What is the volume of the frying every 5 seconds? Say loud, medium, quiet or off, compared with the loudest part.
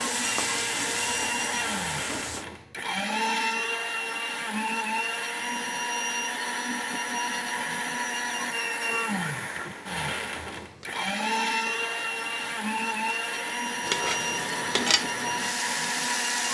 loud, off, loud, loud.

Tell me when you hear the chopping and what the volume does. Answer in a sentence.
The chopping can't be heard in this clip.